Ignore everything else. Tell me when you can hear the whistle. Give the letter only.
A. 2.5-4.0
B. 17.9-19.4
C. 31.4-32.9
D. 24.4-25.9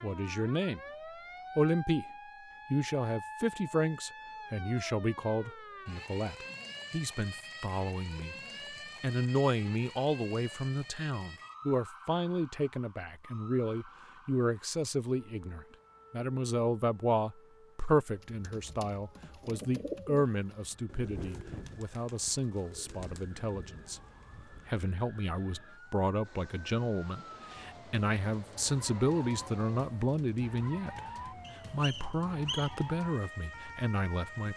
C.